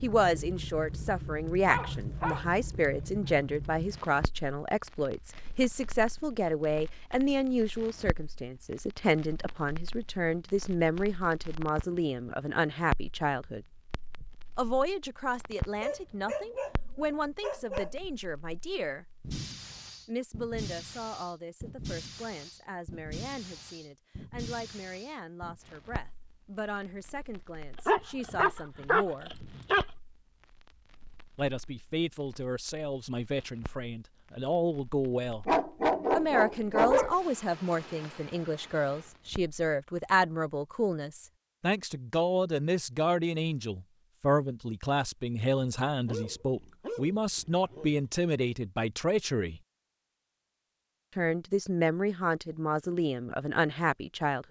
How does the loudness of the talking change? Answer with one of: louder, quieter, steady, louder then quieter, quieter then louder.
quieter then louder.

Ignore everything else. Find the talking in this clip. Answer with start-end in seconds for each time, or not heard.
0.0-13.7, 14.6-19.1, 20.1-29.3, 31.4-35.5, 36.1-49.6, 51.1-54.4.